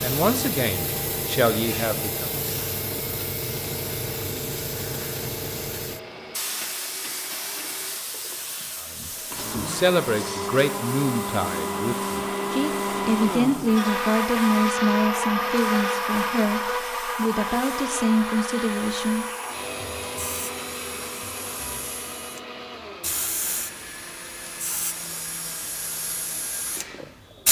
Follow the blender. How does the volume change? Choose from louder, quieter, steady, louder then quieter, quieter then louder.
louder then quieter.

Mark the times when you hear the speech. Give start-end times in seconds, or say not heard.
0.0-2.3, 8.8-19.2.